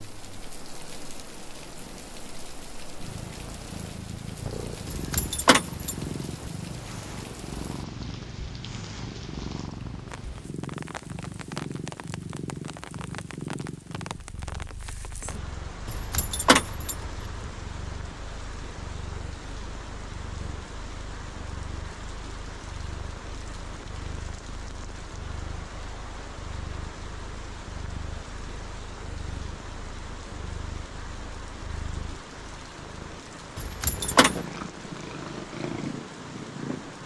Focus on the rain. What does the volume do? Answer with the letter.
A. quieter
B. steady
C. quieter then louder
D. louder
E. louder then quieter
B.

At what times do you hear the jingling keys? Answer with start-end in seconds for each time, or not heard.
4.8-6.5, 15.8-17.5, 33.5-34.4.